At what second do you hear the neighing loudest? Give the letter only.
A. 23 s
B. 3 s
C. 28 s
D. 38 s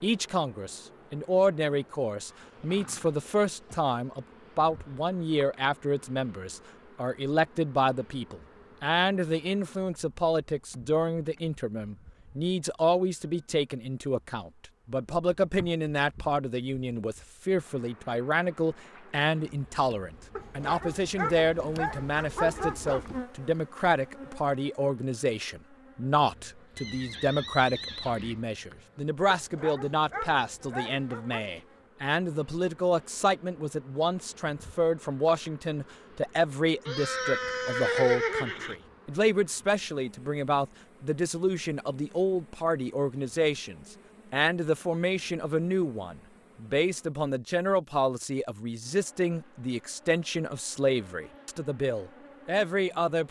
D.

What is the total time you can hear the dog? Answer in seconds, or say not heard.
5 s.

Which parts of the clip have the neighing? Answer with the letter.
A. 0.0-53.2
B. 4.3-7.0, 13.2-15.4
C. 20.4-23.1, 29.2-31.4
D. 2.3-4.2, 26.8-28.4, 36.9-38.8
D.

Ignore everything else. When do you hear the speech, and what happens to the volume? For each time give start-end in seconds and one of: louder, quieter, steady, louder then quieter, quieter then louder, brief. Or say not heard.
0.0-53.2 steady.